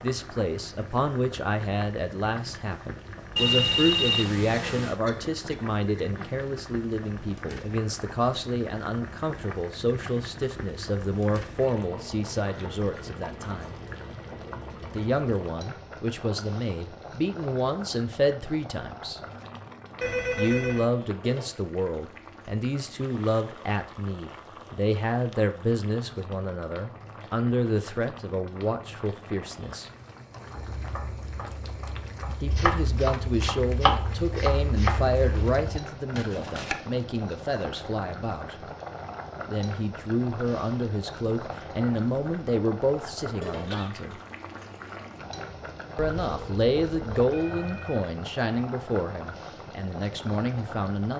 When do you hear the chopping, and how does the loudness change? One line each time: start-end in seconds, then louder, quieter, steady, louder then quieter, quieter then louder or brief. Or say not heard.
30.5-36.8 louder then quieter.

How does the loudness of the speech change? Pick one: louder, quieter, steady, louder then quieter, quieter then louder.
steady.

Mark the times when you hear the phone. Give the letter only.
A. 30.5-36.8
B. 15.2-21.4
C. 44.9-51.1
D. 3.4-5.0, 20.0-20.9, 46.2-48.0
D.